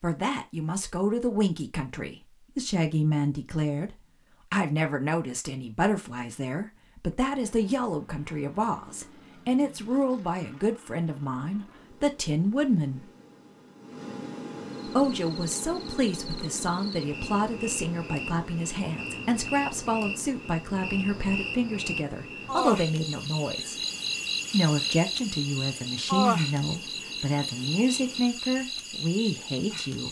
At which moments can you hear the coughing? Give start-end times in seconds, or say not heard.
not heard.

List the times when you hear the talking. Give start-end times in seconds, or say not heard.
0.0-13.1, 14.8-23.8, 24.5-30.0.